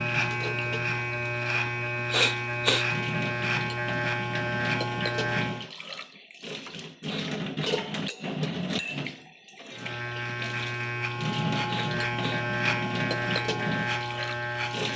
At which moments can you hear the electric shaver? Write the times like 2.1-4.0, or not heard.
0.0-5.7, 9.7-14.9.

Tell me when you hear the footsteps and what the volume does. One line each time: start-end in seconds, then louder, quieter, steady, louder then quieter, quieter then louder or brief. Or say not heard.
not heard.